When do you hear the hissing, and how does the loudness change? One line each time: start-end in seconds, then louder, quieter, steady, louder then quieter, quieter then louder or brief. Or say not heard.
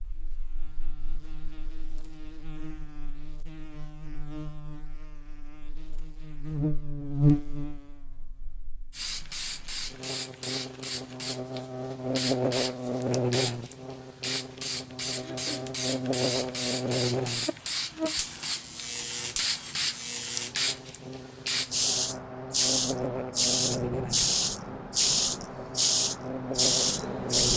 8.9-27.5 louder.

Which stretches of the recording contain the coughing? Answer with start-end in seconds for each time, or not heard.
15.2-15.8.